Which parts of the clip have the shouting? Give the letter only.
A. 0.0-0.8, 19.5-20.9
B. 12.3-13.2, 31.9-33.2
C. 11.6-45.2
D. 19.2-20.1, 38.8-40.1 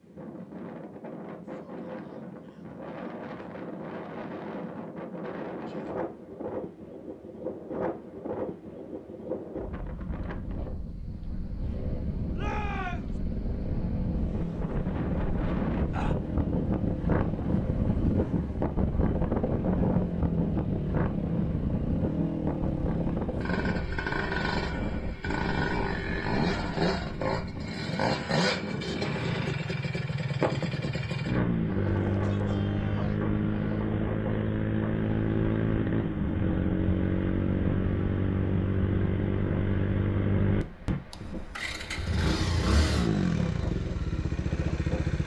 B.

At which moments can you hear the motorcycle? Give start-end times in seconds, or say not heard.
11.6-45.2.